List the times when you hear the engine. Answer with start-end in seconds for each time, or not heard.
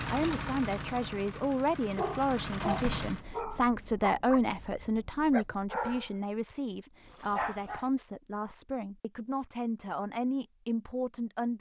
0.0-3.2.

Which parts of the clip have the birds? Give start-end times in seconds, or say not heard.
not heard.